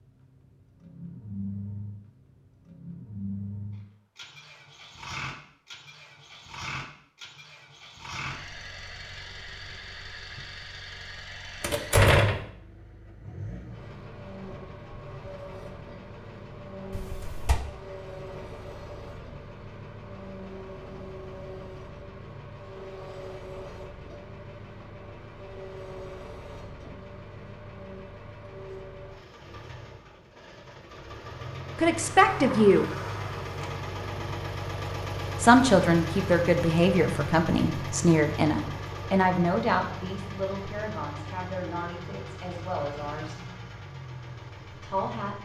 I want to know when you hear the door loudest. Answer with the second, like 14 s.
12 s.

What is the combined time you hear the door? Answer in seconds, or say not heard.
3 s.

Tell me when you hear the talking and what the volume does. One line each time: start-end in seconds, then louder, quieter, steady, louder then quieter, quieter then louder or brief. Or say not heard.
31.8-32.9 brief
35.4-43.4 quieter
44.7-45.3 brief.